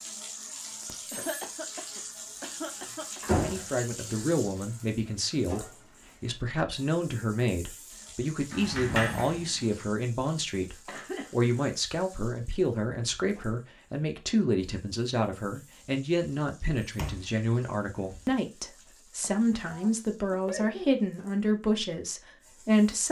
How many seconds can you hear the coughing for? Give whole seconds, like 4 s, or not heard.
5 s.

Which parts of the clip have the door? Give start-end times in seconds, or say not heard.
3.2-3.7, 8.5-9.8, 16.9-18.4.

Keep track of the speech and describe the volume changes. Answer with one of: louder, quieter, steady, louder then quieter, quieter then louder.
steady.